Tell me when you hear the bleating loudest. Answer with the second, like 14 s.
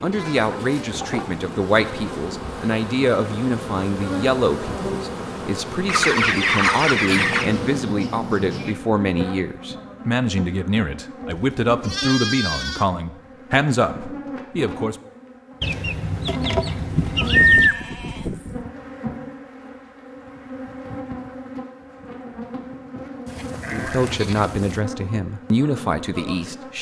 18 s.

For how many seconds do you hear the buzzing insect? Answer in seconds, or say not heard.
27 s.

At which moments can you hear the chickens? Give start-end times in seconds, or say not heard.
5.8-7.5, 15.6-17.7.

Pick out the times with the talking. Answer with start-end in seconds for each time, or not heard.
0.0-14.9, 23.7-26.7.